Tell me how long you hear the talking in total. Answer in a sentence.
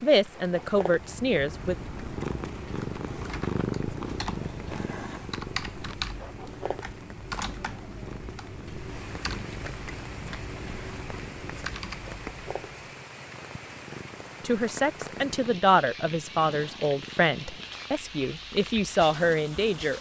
The talking can be heard for 7 seconds in total.